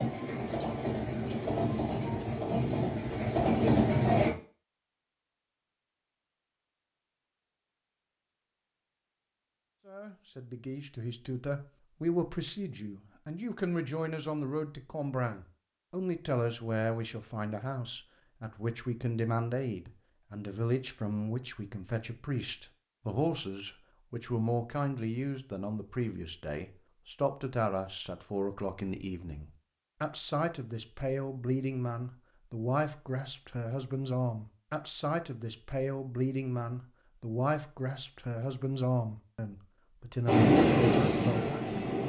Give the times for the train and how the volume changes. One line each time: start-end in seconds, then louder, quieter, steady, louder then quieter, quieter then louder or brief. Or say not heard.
0.0-4.3 louder
40.2-42.0 brief.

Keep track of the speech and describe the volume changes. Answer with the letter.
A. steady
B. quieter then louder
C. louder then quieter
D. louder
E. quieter
A.